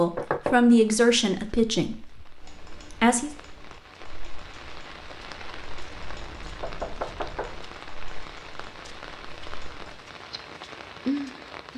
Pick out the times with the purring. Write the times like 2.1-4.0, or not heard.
not heard.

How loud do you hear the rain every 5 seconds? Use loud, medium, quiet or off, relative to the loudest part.
quiet, medium, loud.